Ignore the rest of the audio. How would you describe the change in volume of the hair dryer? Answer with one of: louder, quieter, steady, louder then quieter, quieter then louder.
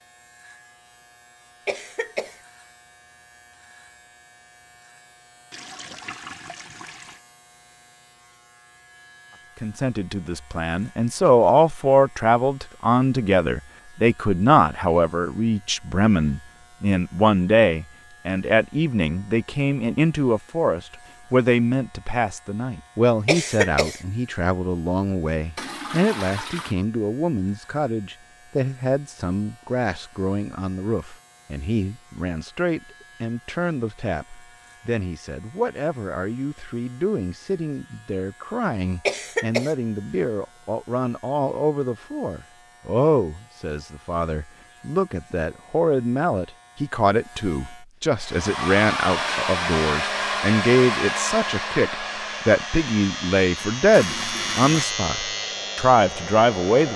quieter.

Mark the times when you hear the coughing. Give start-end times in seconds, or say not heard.
1.6-2.4, 23.2-24.0, 39.0-39.8.